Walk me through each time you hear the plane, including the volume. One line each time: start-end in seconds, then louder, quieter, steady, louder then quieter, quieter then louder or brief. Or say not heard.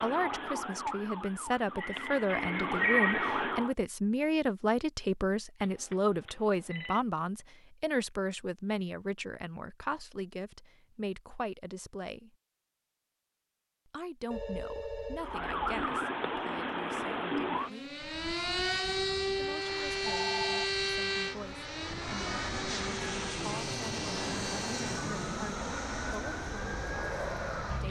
18.0-27.8 louder.